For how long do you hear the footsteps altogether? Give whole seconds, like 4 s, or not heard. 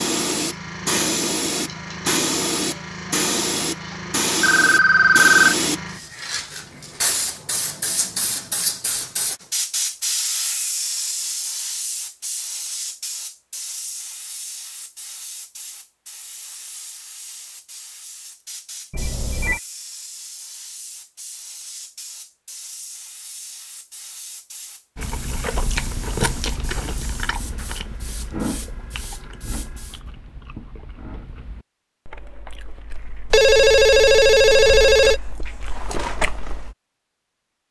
not heard.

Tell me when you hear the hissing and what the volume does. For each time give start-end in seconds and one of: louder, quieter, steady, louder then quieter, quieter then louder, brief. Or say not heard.
0.0-30.0 quieter.